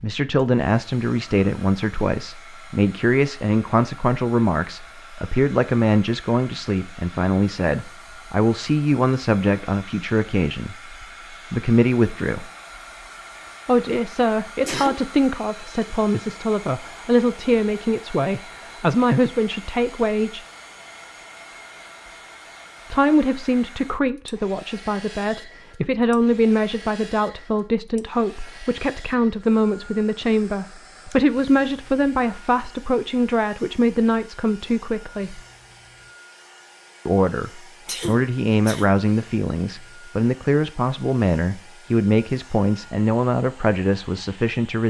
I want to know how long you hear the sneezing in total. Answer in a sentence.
The sneezing can be heard for 2 seconds in total.